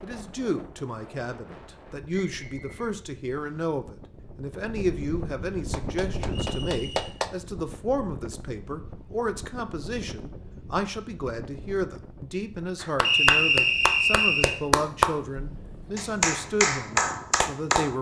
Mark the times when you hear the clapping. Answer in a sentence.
The clapping can be heard from 5.7 to 7.3 s and from 12.8 to 17.9 s.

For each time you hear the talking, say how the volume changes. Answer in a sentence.
The talking can be heard from 0.0 to 17.9 s, at a steady volume.